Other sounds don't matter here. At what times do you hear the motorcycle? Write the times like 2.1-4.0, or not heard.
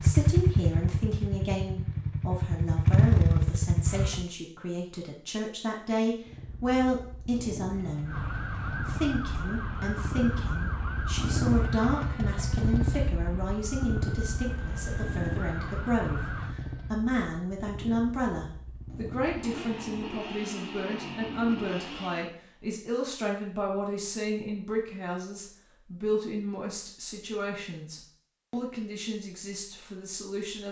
0.0-4.2, 6.2-22.4.